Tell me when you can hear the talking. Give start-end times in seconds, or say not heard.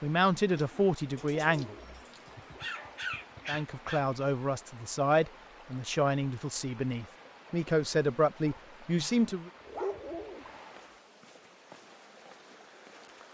0.0-1.8, 3.5-9.5.